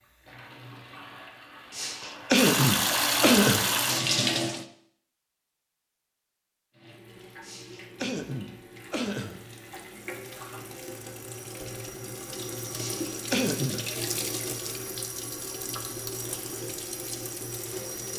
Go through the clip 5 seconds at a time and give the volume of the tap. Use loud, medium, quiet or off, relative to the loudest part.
loud, quiet, medium, medium.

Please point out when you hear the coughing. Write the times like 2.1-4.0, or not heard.
1.7-3.6, 7.4-9.4, 12.8-13.8.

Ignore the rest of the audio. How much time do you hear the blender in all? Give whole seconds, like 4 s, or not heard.
not heard.